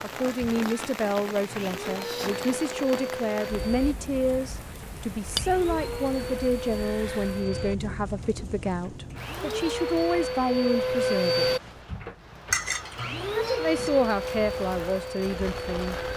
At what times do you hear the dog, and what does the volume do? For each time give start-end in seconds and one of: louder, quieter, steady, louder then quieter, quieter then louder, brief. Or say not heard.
not heard.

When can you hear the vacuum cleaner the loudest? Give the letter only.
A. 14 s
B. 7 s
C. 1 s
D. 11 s
D.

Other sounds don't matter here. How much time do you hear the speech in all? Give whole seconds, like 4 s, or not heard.
14 s.